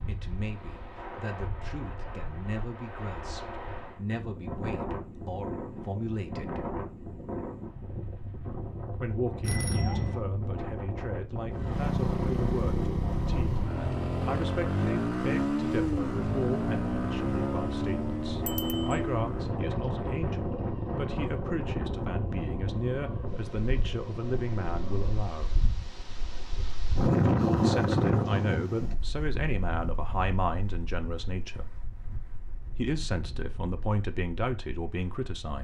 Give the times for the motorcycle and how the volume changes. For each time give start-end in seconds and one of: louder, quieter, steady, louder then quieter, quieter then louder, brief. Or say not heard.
11.5-25.2 quieter.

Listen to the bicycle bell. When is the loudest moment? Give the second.
10 s.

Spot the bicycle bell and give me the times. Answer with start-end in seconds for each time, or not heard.
9.4-10.2, 18.4-19.0.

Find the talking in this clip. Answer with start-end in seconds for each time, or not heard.
0.1-6.7, 9.0-25.6, 27.6-31.6, 32.8-35.6.